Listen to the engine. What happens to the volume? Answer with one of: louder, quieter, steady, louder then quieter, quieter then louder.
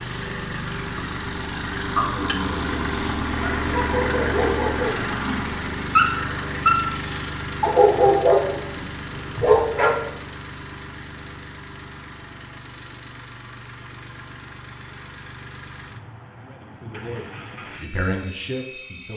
quieter.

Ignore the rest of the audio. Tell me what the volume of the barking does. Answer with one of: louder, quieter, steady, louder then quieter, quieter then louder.
louder.